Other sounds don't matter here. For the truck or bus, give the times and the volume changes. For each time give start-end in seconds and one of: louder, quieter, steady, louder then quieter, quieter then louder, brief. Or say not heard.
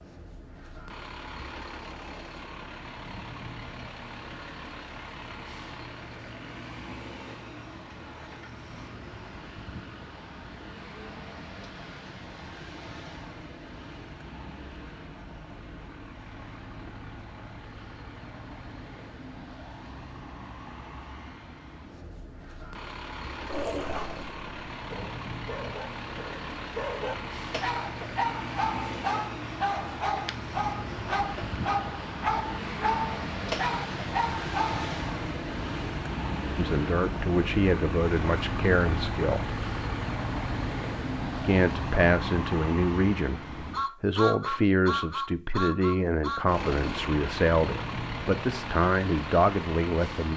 0.0-50.3 louder.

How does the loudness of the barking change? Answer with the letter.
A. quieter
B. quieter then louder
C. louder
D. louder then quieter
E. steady
C.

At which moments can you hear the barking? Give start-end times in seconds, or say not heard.
23.4-35.0.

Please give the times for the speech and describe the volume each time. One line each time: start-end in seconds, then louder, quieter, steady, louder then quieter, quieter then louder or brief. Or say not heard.
36.5-39.5 brief
41.4-50.3 steady.